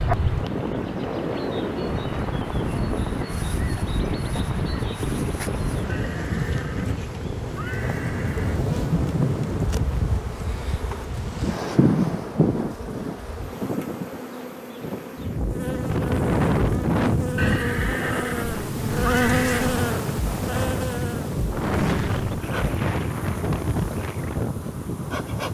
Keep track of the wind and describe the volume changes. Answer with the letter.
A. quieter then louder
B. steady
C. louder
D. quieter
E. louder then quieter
B.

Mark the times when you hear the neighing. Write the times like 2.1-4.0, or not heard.
5.8-8.6, 17.4-19.7.